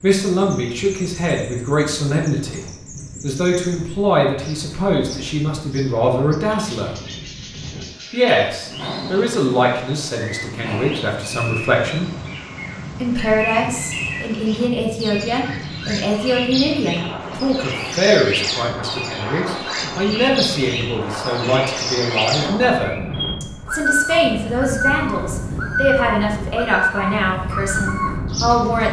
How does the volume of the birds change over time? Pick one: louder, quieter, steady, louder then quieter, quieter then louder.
louder.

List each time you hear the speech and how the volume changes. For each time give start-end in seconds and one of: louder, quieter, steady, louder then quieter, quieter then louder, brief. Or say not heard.
0.0-6.9 steady
8.1-12.1 louder then quieter
13.0-28.8 steady.